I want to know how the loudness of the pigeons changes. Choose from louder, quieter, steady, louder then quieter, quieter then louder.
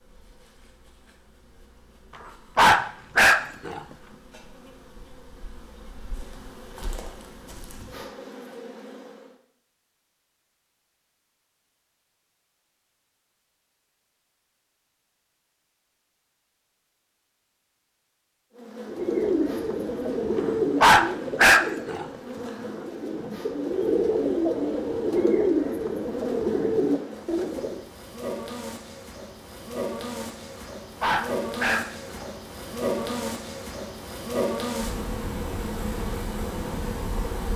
quieter then louder.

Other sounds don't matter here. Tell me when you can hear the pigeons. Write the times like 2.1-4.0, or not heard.
18.9-27.9.